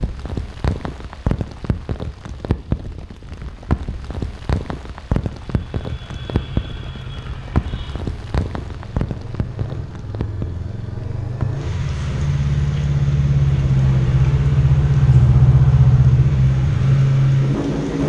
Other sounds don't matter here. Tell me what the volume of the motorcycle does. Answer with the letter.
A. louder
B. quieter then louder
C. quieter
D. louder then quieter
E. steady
A.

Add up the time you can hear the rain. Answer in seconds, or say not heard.
18 s.